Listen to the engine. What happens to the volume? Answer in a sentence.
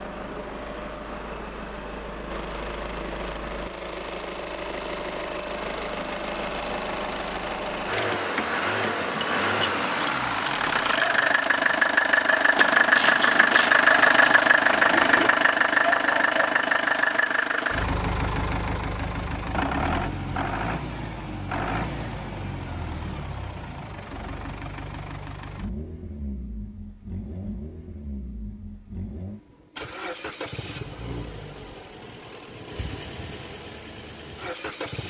The volume of the engine goes up, then down.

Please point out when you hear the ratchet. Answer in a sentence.
You can hear the ratchet from 7.9 to 15.3 s.